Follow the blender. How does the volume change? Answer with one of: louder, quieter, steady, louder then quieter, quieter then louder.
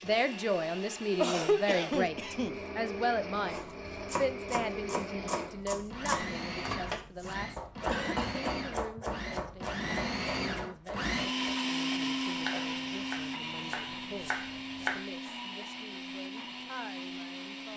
louder then quieter.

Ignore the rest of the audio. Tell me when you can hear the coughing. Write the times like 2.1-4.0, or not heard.
1.1-2.6, 7.4-9.1, 11.9-12.8.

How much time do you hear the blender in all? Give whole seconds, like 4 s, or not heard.
18 s.